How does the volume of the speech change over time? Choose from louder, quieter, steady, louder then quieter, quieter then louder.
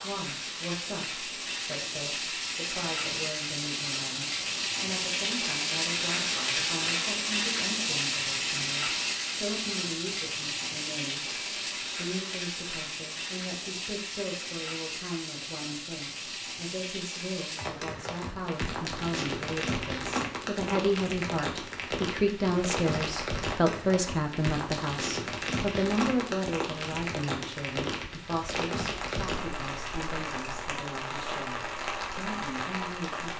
louder then quieter.